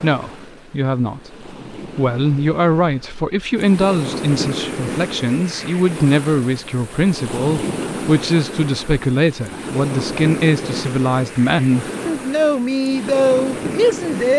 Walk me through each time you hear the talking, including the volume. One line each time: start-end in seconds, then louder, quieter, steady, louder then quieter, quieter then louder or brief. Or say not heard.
0.0-14.3 steady.